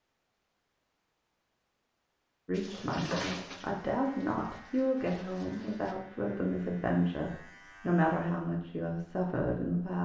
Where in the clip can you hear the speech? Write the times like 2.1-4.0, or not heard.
2.5-9.9.